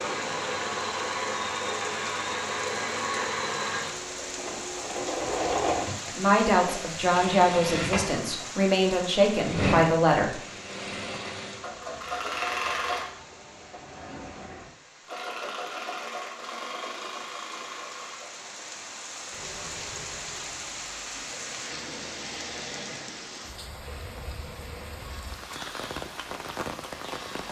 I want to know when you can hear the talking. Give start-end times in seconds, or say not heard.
6.0-10.3.